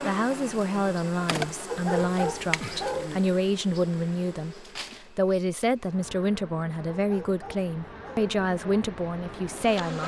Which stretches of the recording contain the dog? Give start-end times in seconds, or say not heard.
1.6-3.1, 6.9-8.3.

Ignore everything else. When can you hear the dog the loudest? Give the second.
2 s.